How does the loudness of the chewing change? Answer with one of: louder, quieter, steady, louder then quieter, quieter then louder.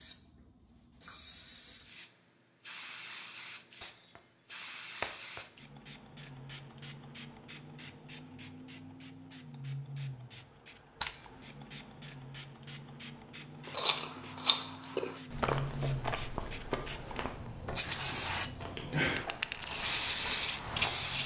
quieter.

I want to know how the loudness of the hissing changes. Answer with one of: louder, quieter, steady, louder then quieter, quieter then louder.
louder.